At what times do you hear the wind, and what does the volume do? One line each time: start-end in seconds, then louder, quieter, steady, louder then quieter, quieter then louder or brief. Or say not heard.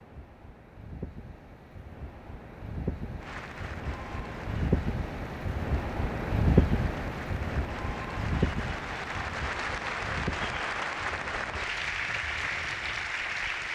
0.0-13.7 louder then quieter.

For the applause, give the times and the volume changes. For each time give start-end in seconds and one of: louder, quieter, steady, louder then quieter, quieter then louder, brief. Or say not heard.
3.1-13.7 louder.